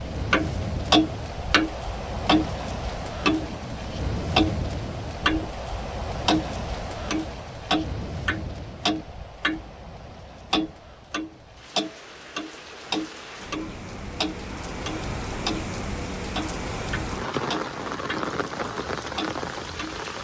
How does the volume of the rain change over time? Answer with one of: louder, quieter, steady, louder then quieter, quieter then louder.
quieter then louder.